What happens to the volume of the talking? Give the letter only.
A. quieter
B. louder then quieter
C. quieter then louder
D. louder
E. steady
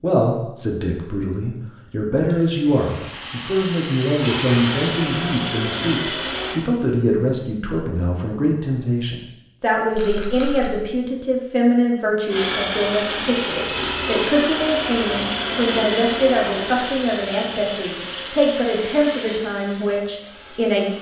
E.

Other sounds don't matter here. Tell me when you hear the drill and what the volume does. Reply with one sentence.
You can hear the drill briefly from 4.2 to 6.6 s; and from 12.2 to 20.9 s, getting quieter.